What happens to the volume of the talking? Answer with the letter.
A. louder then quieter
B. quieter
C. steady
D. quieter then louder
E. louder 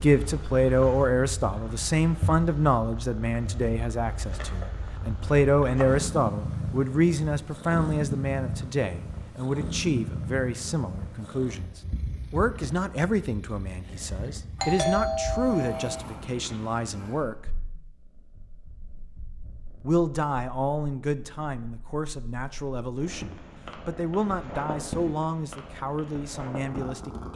B.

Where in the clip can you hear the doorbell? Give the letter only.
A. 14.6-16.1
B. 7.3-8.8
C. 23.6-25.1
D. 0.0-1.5
A.